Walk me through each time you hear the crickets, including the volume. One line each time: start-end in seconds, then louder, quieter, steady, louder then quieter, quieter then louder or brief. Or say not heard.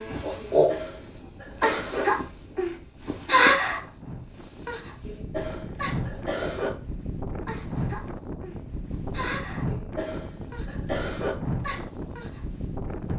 0.0-13.1 quieter.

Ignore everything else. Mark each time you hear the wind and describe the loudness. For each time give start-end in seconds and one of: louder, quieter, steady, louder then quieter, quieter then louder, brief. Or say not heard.
0.1-13.1 louder.